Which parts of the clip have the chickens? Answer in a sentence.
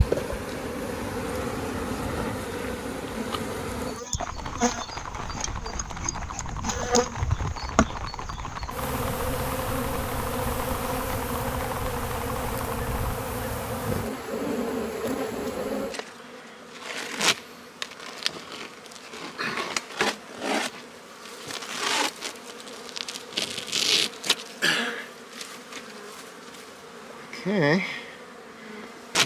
The chickens can't be heard in this clip.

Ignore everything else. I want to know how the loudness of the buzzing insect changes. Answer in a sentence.
The loudness of the buzzing insect stays about the same.